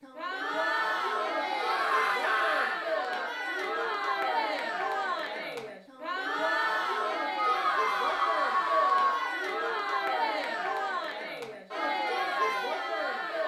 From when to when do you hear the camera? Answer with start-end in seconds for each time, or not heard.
not heard.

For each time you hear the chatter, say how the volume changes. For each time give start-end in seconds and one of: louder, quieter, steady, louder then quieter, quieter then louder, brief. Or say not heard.
0.0-13.4 steady.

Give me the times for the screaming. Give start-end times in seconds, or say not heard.
1.3-2.8, 7.3-9.3.